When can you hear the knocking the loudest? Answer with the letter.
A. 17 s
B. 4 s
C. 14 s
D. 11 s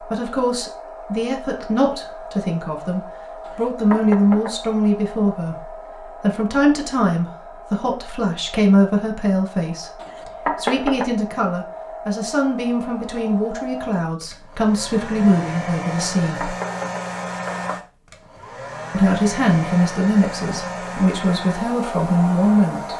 D.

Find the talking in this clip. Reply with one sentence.
You can hear the talking from 0.0 to 16.5 s and from 18.9 to 22.9 s.